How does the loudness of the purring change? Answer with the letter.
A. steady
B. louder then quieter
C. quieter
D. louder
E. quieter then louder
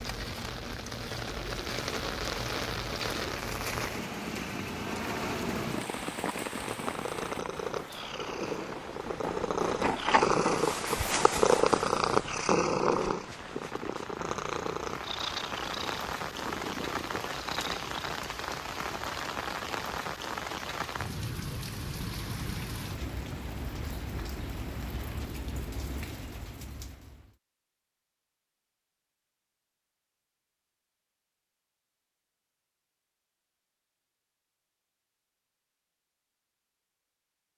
B.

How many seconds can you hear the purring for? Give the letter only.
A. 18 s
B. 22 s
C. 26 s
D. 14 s
A.